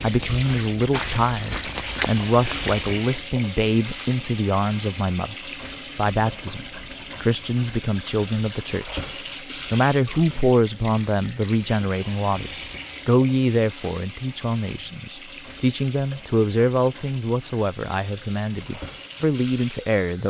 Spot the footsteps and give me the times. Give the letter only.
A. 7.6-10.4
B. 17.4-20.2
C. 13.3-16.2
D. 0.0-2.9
D.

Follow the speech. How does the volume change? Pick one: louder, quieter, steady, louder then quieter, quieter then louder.
steady.